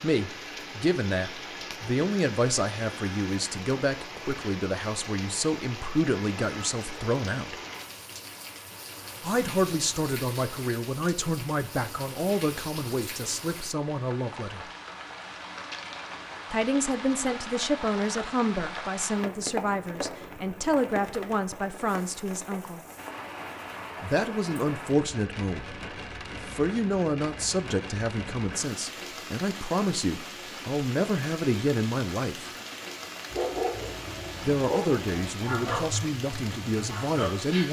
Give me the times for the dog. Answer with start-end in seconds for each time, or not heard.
33.3-37.6.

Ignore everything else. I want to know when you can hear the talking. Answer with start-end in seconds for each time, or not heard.
0.0-7.5, 9.2-14.7, 16.5-22.8, 24.0-25.8, 26.4-32.5, 34.4-37.6.